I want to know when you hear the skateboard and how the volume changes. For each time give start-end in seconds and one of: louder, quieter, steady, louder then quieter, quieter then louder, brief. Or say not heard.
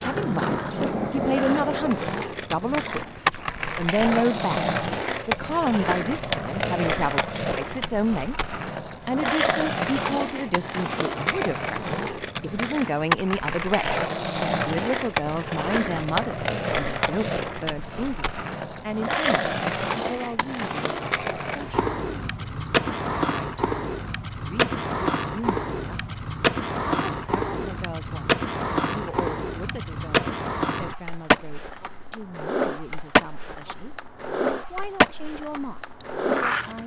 0.0-36.8 steady.